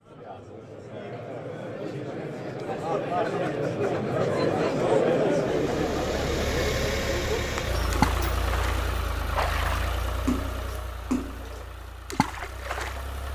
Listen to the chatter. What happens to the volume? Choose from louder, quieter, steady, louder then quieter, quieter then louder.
louder then quieter.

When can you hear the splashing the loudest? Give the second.
8 s.